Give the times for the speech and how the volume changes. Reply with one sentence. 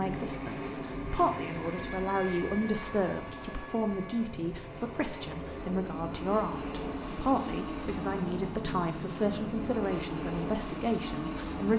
The speech can be heard from 0.0 to 11.7 s, at a steady volume.